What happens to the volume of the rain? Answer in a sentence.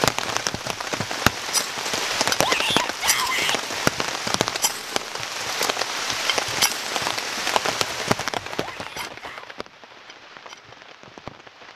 The loudness of the rain goes down.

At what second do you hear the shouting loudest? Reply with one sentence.
The volume of the shouting peaks at 3 seconds.